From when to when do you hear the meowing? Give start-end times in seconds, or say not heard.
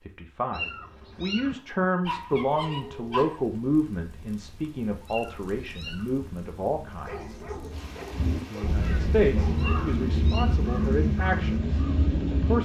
0.5-1.6, 5.0-6.1, 9.6-10.6.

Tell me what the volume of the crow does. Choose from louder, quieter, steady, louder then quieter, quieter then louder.
louder.